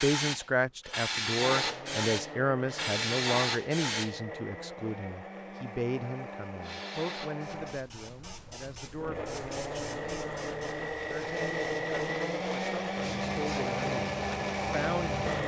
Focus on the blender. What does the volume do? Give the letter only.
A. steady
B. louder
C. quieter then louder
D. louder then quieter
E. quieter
B.